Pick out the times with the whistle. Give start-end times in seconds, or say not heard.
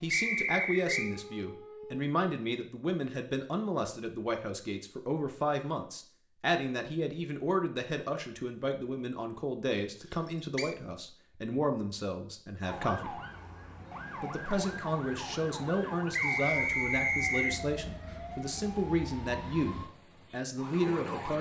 0.1-1.1, 10.1-10.8, 16.1-17.6.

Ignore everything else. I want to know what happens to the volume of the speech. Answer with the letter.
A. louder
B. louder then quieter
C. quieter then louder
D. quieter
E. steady
E.